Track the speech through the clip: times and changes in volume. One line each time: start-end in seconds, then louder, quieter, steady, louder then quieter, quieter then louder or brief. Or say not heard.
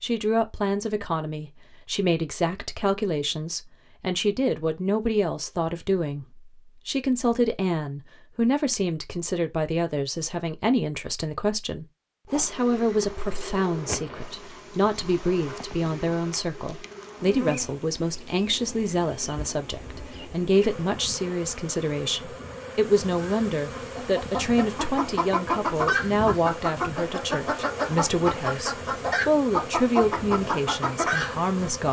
0.0-31.8 steady.